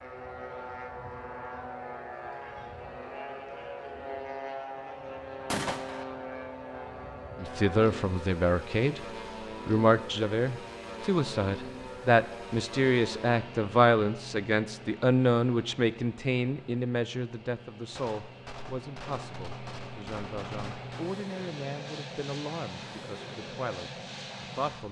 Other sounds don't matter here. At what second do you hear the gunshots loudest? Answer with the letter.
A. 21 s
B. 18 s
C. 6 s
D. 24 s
C.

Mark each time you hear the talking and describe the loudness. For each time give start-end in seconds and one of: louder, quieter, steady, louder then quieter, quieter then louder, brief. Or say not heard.
7.4-9.1 brief
9.7-24.8 quieter.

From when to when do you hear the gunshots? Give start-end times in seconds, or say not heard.
5.5-6.0, 17.9-21.1.